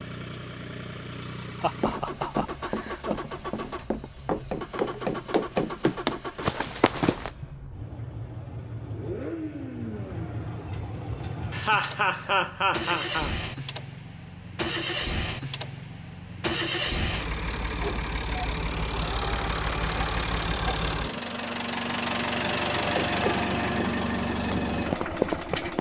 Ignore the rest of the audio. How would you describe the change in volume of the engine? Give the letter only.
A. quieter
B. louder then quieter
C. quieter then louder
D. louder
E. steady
D.